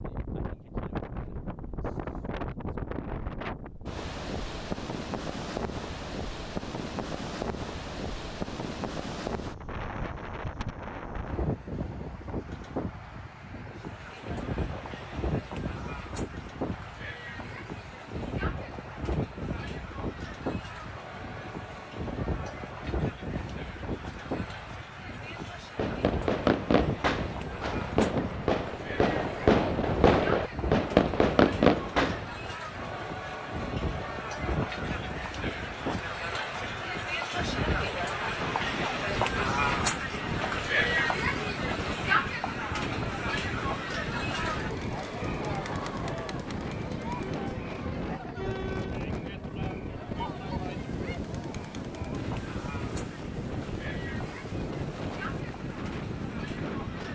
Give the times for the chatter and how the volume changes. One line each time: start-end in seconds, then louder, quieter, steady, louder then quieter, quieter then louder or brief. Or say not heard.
13.7-57.1 louder then quieter.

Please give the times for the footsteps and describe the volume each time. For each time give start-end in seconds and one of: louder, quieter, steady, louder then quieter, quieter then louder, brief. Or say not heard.
not heard.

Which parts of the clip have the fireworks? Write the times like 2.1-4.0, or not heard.
25.8-32.5.